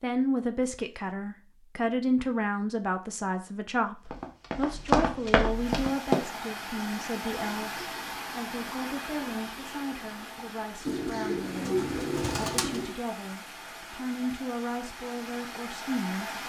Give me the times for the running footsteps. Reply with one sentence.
You can hear the running footsteps from 4.0 to 6.2 s.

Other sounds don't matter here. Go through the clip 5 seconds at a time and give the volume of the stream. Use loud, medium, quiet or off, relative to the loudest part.
off, loud, medium, loud.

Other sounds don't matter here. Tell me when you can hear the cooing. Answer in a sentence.
You can hear the cooing from 10.8 to 12.9 s.